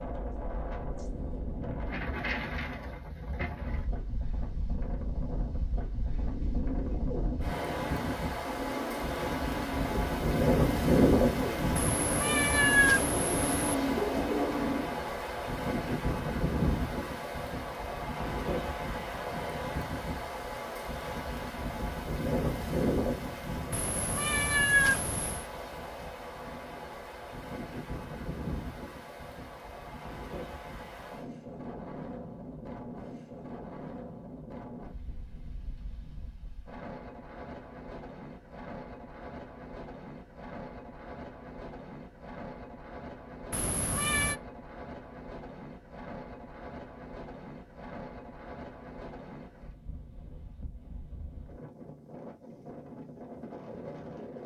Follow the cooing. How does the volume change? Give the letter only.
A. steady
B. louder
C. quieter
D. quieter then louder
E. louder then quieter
B.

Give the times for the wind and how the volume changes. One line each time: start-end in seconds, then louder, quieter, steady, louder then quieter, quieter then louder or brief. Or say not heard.
0.0-54.4 quieter.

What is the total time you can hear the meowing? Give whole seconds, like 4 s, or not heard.
5 s.